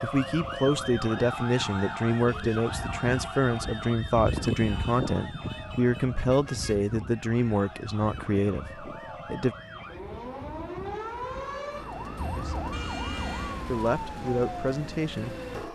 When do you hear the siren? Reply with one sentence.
You can hear the siren from 0.0 to 15.7 s.